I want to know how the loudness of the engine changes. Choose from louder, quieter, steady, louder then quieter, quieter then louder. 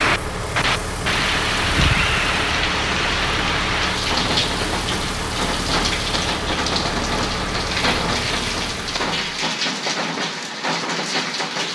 steady.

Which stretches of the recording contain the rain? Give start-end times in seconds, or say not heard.
0.0-11.7.